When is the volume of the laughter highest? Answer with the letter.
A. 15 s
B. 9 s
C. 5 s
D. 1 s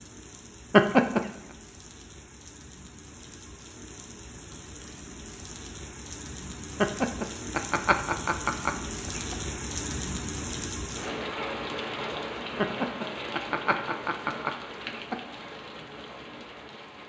D.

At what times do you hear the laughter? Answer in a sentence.
The laughter can be heard from 0.7 to 1.3 s, from 6.8 to 9.3 s and from 12.6 to 15.2 s.